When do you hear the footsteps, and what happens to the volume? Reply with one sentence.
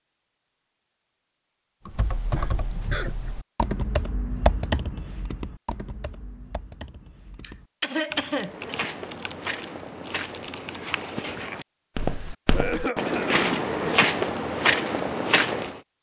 The footsteps can be heard from 8.4 to 15.8 s, getting louder.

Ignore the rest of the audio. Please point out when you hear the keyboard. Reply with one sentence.
You can hear the keyboard from 1.9 to 11.4 s.